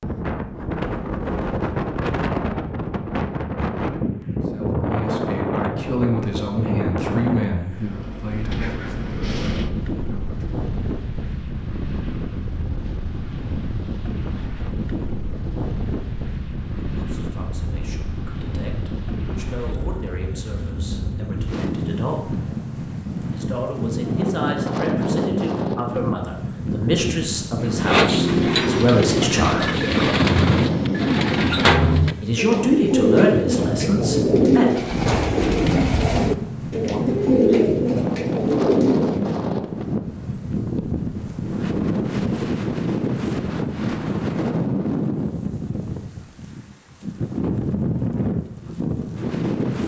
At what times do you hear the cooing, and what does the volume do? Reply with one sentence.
You can hear the cooing from 27.6 to 39.2 s, at a steady volume.